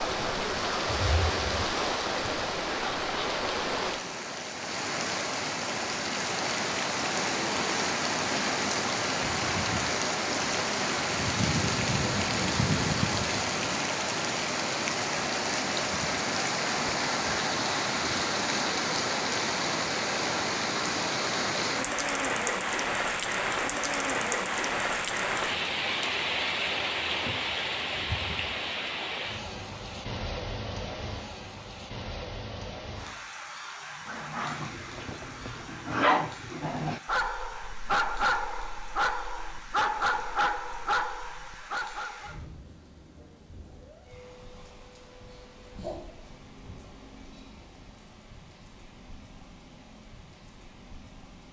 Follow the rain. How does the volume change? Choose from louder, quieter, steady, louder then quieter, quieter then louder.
quieter.